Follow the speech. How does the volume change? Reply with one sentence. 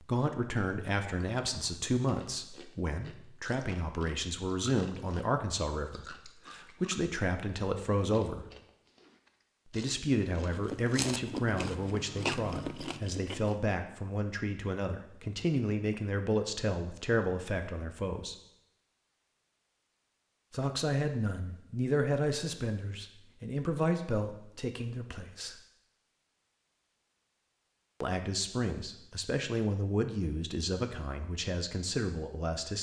The loudness of the speech stays about the same.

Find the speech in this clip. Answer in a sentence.
You can hear the speech from 0.0 to 8.4 s, from 9.7 to 18.4 s, from 20.5 to 25.6 s and from 28.0 to 32.7 s.